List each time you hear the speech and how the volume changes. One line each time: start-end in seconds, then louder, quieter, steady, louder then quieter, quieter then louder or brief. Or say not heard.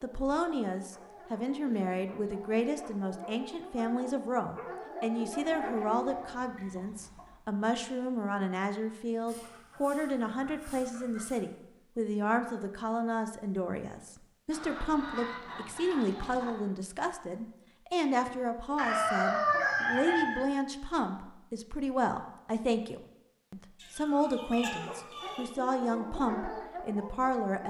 0.0-27.6 steady.